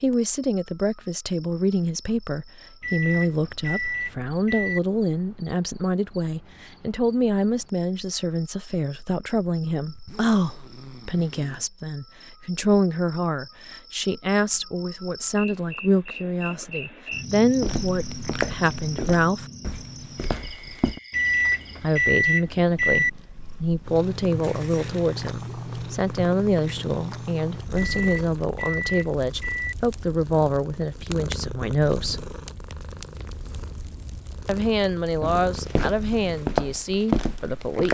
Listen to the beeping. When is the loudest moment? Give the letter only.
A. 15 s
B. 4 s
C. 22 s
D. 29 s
C.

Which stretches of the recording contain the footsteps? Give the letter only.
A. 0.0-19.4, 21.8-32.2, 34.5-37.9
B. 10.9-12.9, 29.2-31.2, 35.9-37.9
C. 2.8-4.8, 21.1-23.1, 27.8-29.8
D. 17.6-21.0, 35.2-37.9
D.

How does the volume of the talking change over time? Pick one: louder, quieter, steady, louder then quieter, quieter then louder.
steady.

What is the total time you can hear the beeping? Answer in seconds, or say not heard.
6 s.